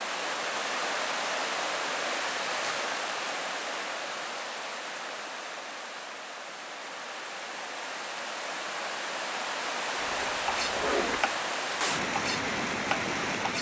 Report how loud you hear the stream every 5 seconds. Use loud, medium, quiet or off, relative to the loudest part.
loud, medium, loud.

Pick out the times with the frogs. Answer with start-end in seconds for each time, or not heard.
not heard.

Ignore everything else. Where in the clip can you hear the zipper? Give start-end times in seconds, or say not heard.
2.5-3.0, 10.0-11.2.